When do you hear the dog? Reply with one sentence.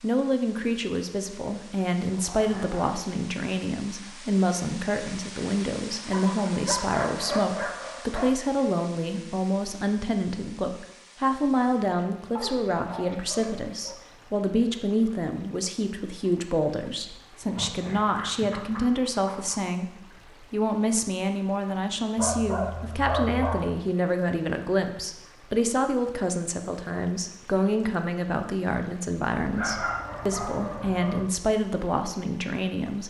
You can hear the dog from 2.0 to 3.0 s, from 6.1 to 8.3 s, from 12.3 to 13.9 s, from 17.4 to 19.6 s, from 22.1 to 23.8 s and from 29.4 to 31.2 s.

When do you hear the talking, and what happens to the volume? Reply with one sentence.
The talking can be heard from 0.0 to 33.0 s, at a steady volume.